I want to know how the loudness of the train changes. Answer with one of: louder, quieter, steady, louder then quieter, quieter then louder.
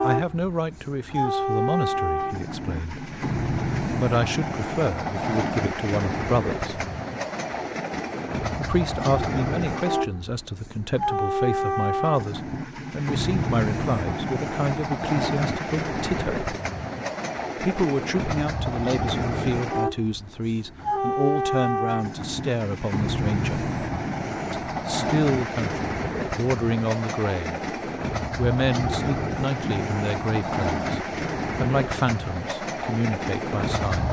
steady.